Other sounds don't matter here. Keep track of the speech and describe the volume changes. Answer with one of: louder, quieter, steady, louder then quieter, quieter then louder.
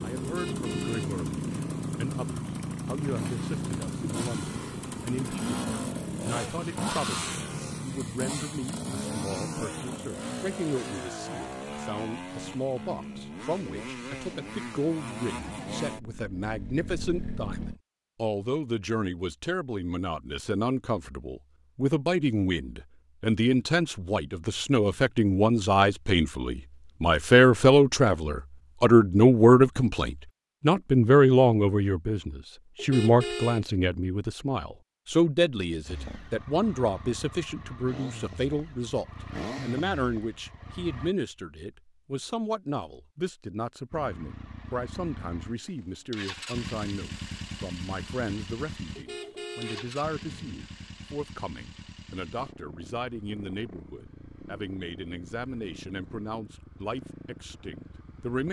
louder then quieter.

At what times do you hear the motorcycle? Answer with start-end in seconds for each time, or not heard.
0.0-17.8, 35.9-41.1, 43.9-58.4.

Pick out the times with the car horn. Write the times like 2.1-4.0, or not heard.
0.2-1.1, 32.8-33.6, 49.0-50.7.